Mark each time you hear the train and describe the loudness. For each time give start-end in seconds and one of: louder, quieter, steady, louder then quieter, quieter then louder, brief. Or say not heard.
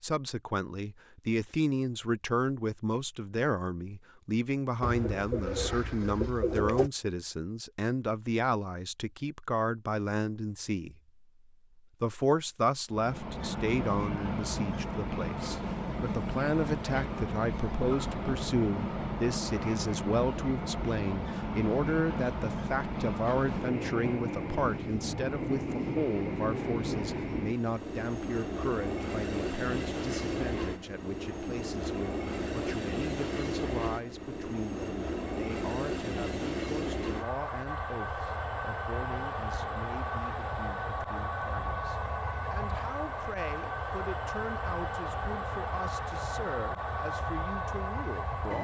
12.9-48.5 steady.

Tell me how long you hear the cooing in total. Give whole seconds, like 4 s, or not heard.
2 s.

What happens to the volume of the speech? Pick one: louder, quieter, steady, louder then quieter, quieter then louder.
quieter.